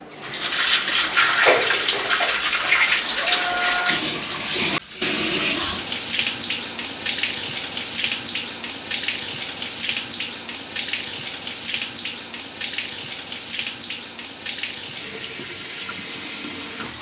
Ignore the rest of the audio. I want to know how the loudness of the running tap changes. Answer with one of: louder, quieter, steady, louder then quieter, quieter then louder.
quieter.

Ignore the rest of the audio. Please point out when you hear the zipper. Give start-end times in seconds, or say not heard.
1.4-2.2.